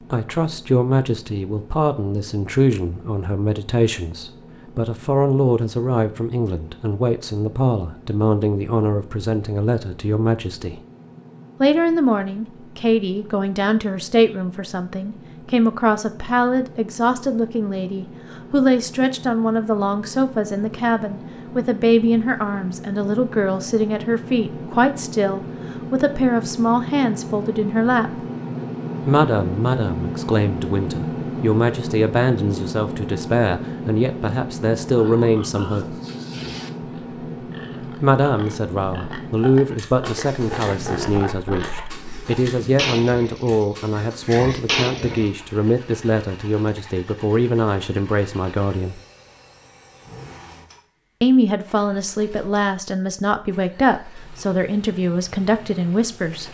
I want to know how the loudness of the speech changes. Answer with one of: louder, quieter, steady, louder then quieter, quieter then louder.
steady.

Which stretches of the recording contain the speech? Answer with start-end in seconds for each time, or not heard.
0.1-10.8, 11.6-28.1, 29.1-36.0, 38.0-49.0, 51.2-56.4.